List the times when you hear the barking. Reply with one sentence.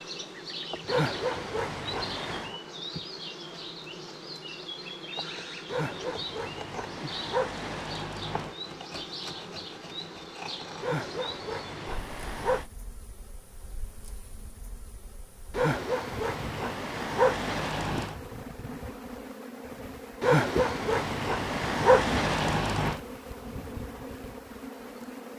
The barking can be heard from 0.8 to 2.6 s, from 5.7 to 8.6 s, from 10.8 to 12.7 s, from 15.5 to 18.1 s and from 20.2 to 23.0 s.